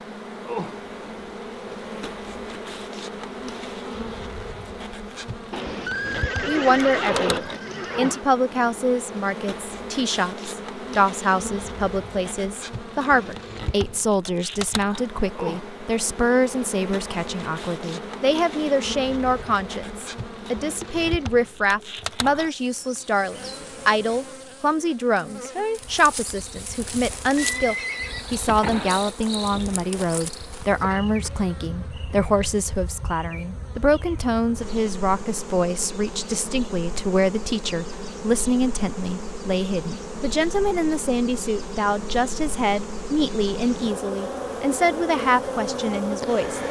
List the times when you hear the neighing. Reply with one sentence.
The neighing can be heard from 5.5 to 8.2 s and from 27.4 to 29.1 s.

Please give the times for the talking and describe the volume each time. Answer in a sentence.
The talking can be heard from 6.5 to 46.6 s, at a steady volume.